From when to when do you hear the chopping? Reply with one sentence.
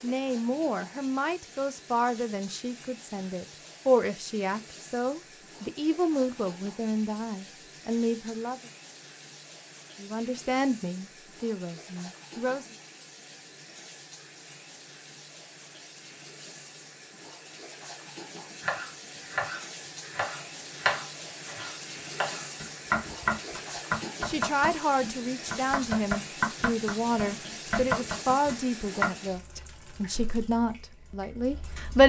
You can hear the chopping from 18.6 to 29.1 s.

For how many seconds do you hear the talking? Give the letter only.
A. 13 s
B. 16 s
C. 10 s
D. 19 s
D.